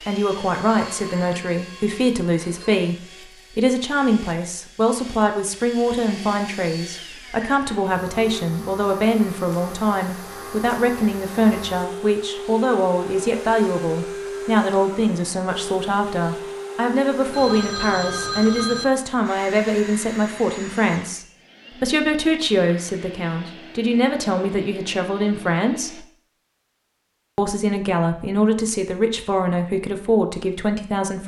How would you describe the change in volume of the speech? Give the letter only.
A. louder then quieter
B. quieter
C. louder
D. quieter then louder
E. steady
E.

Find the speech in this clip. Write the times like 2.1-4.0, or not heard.
0.1-26.1, 27.4-31.2.